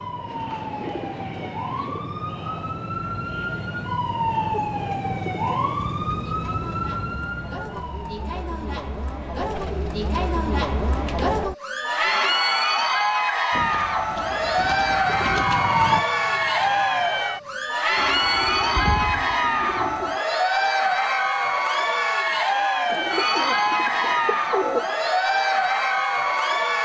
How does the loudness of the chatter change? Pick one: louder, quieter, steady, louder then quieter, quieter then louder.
louder.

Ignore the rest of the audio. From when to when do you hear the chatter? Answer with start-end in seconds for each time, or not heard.
0.0-26.7.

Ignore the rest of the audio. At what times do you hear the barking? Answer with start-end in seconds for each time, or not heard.
not heard.